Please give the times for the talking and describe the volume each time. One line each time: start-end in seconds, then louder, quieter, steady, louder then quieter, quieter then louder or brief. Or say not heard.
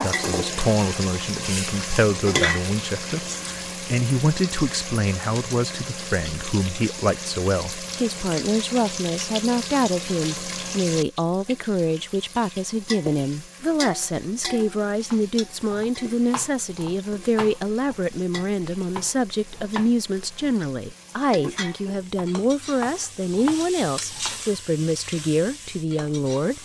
0.0-26.6 steady.